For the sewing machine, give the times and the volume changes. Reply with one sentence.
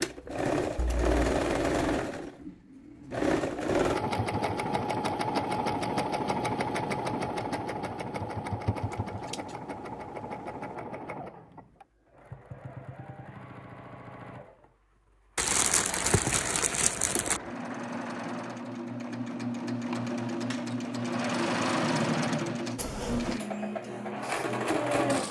The sewing machine can be heard from 0.0 to 25.2 s, getting quieter then louder.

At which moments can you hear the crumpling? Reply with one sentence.
The crumpling can be heard from 15.3 to 17.4 s.